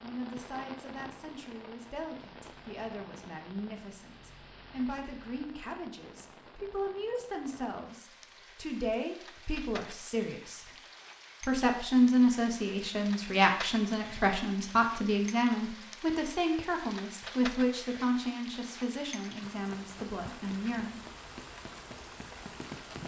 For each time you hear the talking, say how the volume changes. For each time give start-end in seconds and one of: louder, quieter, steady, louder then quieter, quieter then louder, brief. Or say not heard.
0.0-10.7 louder
11.4-21.0 quieter.